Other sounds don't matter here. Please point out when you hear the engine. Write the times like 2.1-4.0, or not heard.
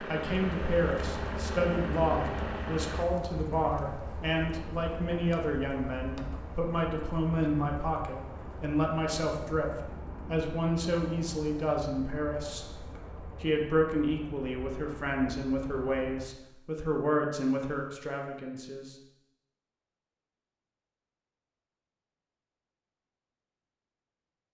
0.0-3.0.